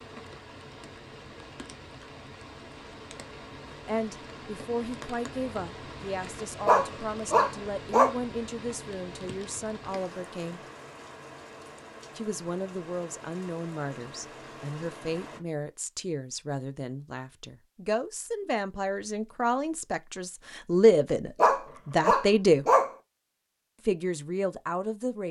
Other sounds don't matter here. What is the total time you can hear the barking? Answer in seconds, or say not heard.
3 s.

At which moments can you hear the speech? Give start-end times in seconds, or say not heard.
3.9-10.6, 12.2-22.6, 23.9-25.2.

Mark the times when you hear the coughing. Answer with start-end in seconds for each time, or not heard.
not heard.